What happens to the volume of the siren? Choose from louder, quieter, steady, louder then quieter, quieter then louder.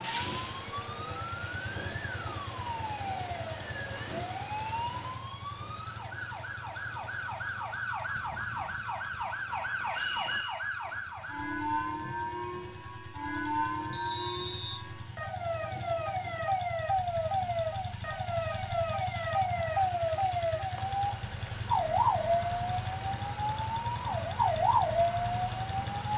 louder.